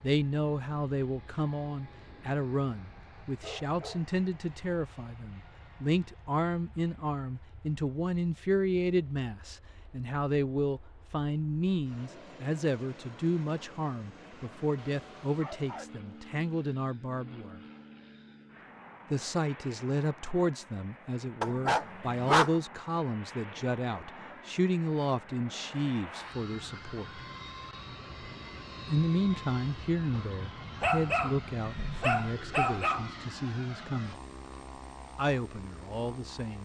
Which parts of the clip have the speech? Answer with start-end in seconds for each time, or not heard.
0.0-17.6, 19.1-27.2, 28.9-34.2, 35.1-36.6.